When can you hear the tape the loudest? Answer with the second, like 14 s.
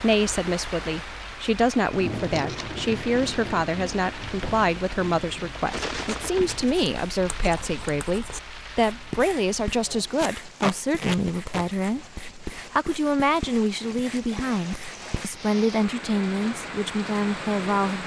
11 s.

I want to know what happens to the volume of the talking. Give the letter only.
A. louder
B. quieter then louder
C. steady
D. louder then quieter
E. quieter
C.